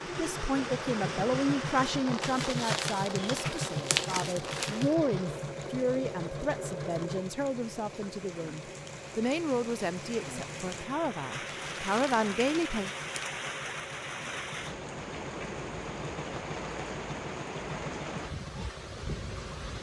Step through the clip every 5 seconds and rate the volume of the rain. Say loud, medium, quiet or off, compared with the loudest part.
loud, medium, loud, loud.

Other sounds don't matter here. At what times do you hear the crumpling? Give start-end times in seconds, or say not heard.
2.2-5.0, 11.4-13.2.